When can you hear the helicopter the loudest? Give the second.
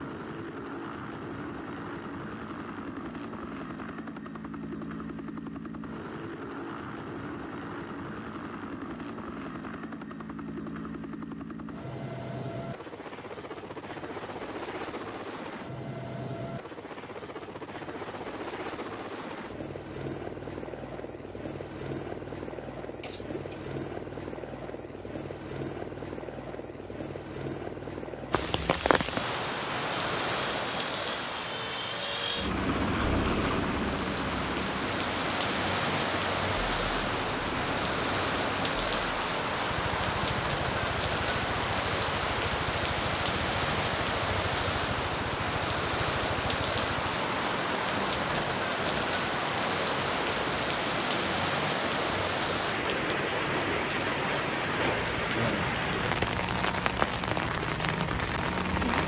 33 s.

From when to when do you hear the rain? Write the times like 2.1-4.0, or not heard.
28.3-59.0.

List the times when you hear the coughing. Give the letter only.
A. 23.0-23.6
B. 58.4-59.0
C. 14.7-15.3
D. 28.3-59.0
A.